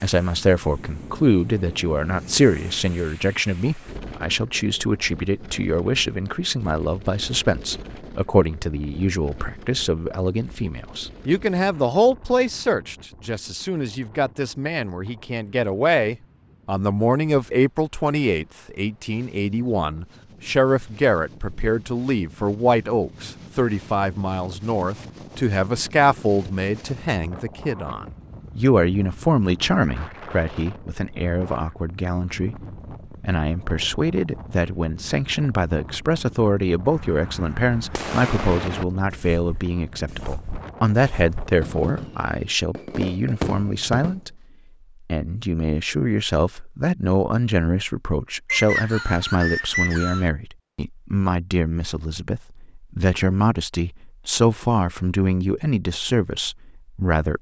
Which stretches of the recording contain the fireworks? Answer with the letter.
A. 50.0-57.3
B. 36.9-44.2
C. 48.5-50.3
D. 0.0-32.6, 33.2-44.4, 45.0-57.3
B.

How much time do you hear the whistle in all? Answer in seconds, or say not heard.
2 s.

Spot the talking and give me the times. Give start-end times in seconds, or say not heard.
0.0-32.6, 33.2-44.4, 45.0-57.3.